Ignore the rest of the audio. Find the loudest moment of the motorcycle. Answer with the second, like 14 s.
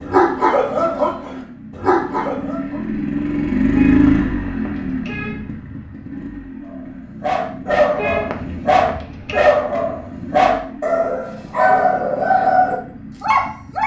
4 s.